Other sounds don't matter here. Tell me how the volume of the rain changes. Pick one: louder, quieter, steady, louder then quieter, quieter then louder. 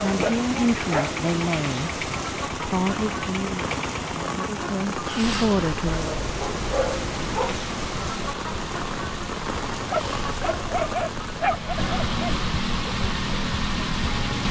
steady.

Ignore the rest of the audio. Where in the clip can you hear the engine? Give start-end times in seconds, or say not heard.
0.0-14.4.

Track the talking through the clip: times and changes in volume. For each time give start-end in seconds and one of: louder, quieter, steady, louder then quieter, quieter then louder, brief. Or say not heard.
0.0-6.1 quieter then louder.